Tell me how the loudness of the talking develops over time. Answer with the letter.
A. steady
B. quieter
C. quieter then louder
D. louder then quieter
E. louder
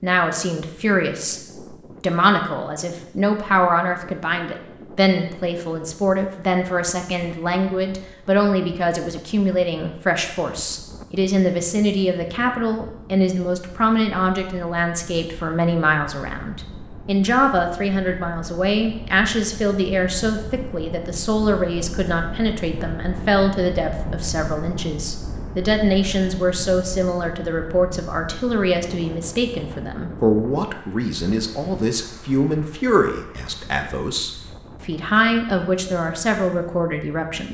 A.